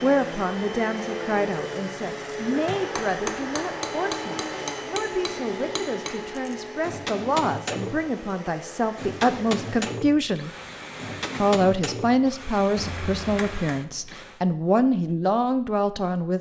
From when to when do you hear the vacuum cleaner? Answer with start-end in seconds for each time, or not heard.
0.0-14.4.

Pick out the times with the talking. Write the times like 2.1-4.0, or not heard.
0.0-10.5, 11.4-16.3.